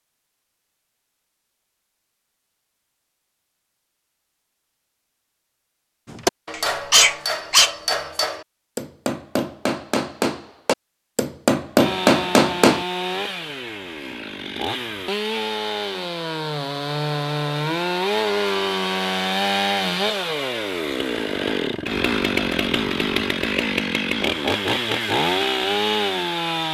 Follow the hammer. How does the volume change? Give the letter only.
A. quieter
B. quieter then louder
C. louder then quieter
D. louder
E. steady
D.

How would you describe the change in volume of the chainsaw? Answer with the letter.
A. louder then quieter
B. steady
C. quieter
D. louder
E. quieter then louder
D.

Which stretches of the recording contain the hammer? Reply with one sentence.
You can hear the hammer from 6.0 to 12.8 s.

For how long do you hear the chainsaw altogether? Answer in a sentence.
The chainsaw can be heard for 15 seconds in total.